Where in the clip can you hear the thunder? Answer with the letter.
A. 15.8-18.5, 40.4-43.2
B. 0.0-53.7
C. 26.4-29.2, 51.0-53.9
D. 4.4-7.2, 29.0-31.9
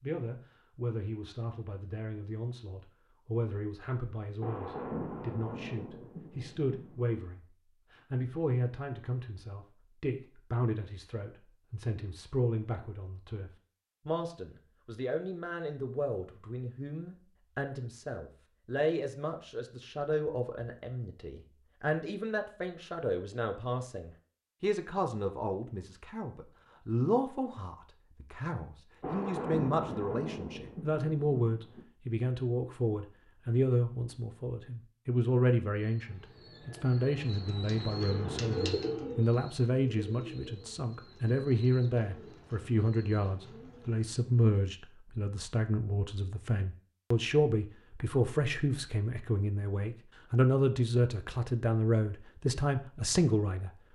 D.